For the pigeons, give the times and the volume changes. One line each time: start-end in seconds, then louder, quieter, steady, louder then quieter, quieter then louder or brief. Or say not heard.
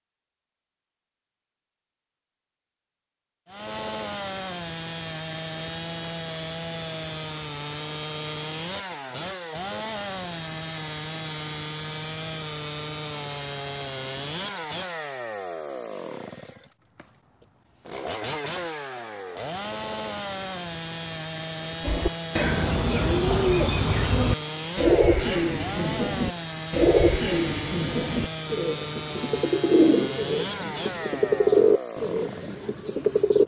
21.8-33.4 steady.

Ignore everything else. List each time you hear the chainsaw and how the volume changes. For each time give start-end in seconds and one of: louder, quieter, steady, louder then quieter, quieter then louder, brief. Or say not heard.
3.5-33.4 steady.